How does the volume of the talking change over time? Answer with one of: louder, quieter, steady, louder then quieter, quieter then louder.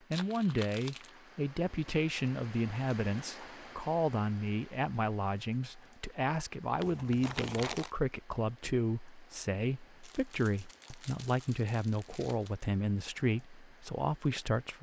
steady.